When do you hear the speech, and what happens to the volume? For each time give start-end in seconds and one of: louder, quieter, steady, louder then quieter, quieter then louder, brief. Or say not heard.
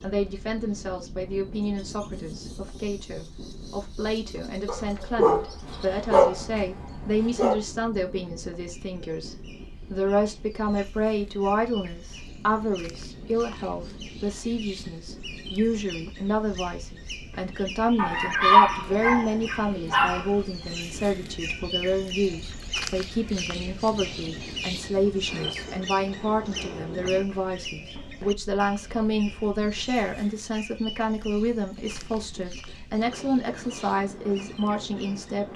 0.0-35.5 steady.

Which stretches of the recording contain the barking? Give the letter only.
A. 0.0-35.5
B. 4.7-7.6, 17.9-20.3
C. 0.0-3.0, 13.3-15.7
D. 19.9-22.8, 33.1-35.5
B.